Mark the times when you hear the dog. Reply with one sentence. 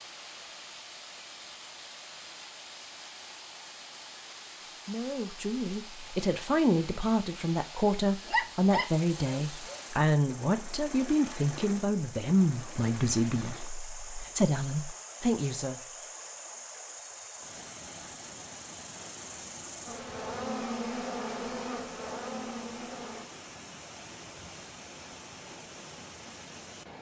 The dog can be heard from 8.2 to 9.8 s.